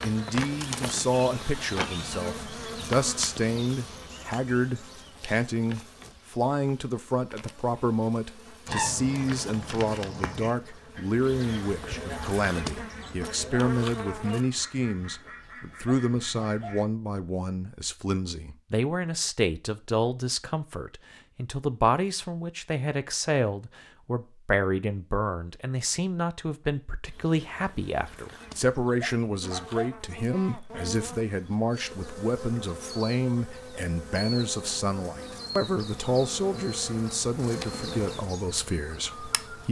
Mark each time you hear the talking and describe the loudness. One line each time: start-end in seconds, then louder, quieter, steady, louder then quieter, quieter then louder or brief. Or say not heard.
0.0-39.6 steady.